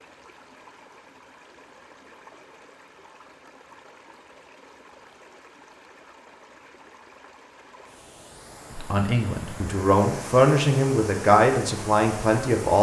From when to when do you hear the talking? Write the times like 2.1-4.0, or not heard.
8.7-12.7.